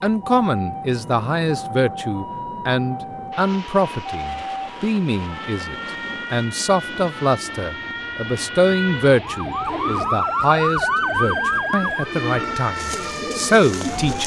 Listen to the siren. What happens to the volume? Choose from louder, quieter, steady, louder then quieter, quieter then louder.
louder.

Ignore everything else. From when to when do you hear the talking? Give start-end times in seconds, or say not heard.
0.0-14.2.